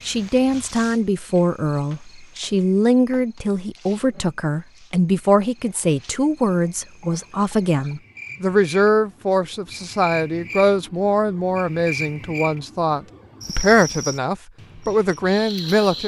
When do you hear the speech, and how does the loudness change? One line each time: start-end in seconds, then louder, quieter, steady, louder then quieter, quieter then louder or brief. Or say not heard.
0.0-16.0 steady.